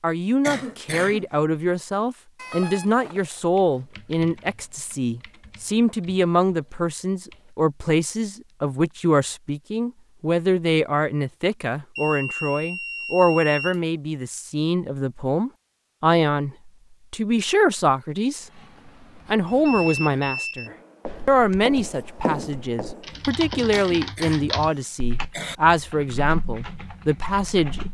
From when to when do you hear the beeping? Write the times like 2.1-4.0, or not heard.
2.4-3.4, 11.9-13.8, 19.4-20.7.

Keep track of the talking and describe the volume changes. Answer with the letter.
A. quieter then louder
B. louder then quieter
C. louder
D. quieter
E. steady
E.